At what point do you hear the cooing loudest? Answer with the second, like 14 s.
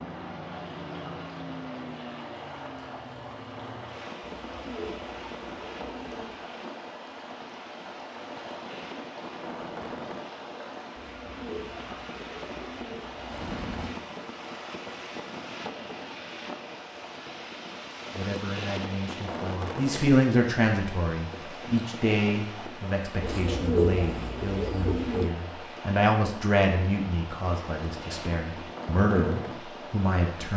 24 s.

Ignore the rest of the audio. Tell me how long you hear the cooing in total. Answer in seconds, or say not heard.
7 s.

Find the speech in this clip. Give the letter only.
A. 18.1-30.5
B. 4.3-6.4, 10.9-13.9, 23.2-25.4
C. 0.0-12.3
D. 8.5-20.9
A.